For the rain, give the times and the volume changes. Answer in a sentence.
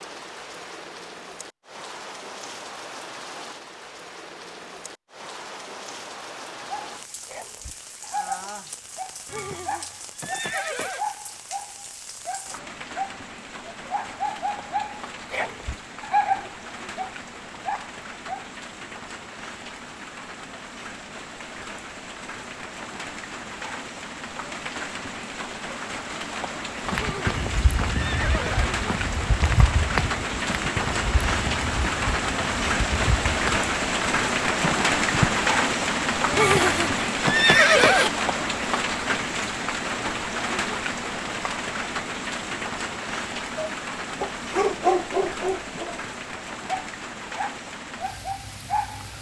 The rain can be heard from 0.0 to 49.1 s, getting louder then quieter.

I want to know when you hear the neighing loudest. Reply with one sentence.
The volume of the neighing peaks at 38 seconds.